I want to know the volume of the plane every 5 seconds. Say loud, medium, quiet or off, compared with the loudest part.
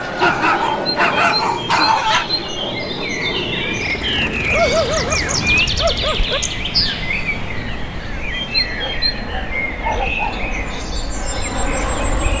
loud, medium, loud.